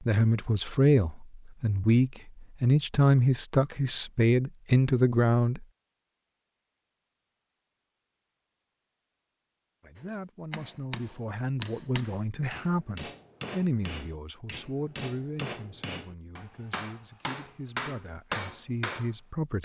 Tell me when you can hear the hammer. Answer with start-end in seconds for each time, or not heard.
9.9-19.1.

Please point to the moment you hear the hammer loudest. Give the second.
18 s.